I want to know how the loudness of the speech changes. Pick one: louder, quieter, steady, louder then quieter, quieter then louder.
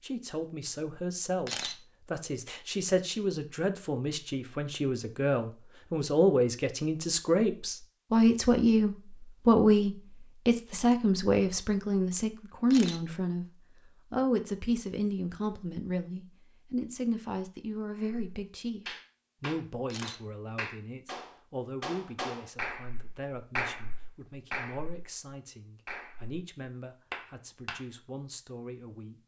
louder then quieter.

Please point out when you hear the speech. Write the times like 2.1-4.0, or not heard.
0.0-13.4, 14.1-29.2.